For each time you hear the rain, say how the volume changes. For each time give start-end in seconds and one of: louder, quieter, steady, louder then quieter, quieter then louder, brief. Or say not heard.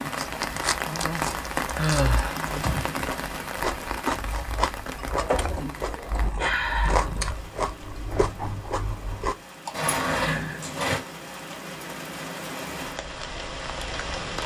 0.0-14.4 quieter then louder.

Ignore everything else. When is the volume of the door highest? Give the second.
10 s.